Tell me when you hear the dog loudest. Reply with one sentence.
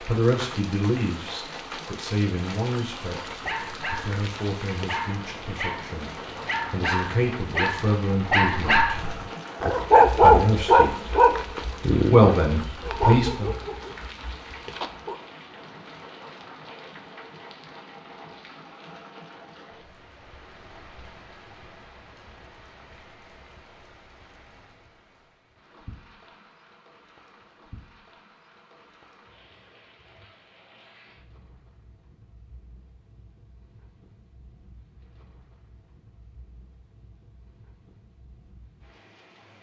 The volume of the dog peaks at 10 seconds.